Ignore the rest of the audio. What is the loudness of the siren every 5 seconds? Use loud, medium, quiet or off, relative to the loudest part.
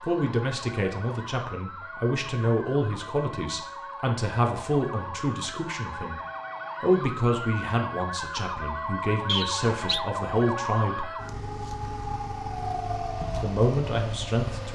medium, loud, loud.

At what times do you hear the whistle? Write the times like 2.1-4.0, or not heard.
9.2-10.0.